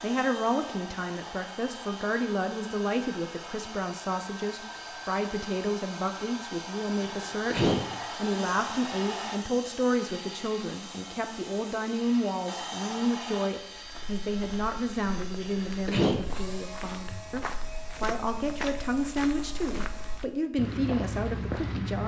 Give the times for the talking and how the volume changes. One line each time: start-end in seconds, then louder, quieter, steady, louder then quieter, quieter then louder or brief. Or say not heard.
0.0-22.0 steady.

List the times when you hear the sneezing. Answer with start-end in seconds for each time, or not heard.
7.0-7.8, 15.4-16.2.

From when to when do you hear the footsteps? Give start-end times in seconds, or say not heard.
13.8-22.0.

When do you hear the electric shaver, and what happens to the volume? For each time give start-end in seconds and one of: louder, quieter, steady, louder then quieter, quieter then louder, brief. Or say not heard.
not heard.